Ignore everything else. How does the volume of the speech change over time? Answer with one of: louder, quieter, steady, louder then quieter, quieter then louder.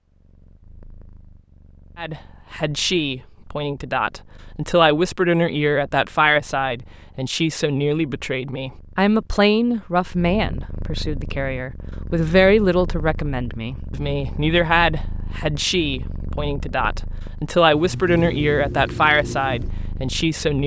steady.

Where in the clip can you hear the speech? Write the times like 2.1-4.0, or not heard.
1.9-20.6.